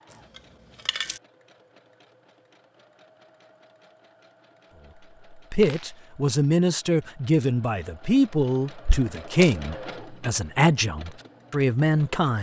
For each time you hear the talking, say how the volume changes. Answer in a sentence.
The talking can be heard from 5.5 to 12.3 s, at a steady volume.